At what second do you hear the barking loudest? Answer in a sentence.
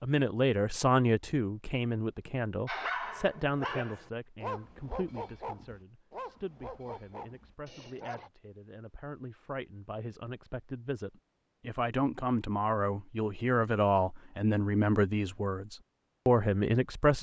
The volume of the barking peaks at 3 seconds.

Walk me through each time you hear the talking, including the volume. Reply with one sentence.
You can hear the talking from 0.0 to 17.1 s, getting quieter then louder.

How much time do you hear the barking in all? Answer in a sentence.
The barking can be heard for 6 seconds in total.